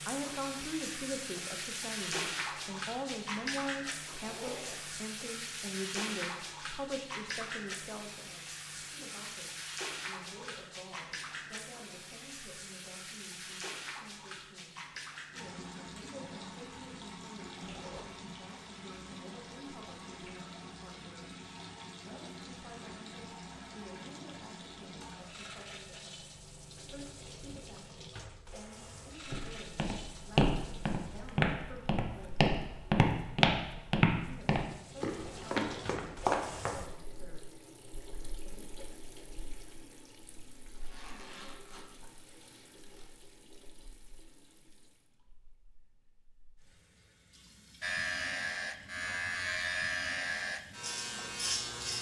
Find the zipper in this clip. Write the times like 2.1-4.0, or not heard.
4.2-4.8, 17.6-18.2, 40.7-43.1.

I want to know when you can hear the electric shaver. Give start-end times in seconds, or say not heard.
47.8-51.9.